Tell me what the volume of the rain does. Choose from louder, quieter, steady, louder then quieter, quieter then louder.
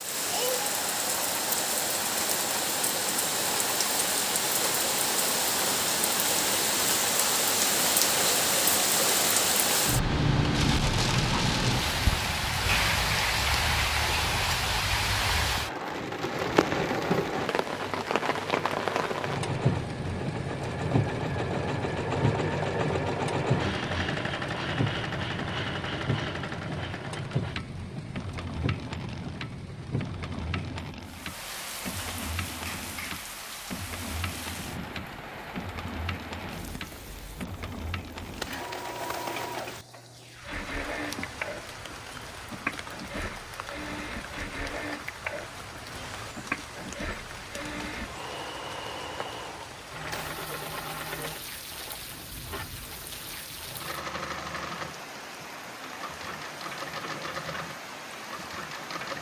quieter.